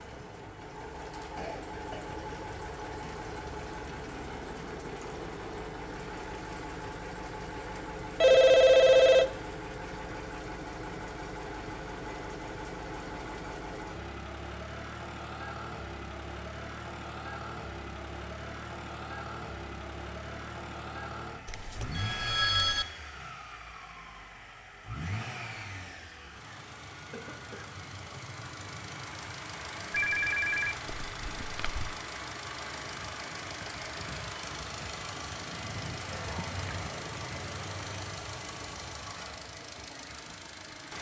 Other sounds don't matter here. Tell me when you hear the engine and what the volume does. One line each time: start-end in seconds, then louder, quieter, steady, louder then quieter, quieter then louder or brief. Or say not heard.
0.0-40.9 steady.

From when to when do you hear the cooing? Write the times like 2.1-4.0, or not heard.
not heard.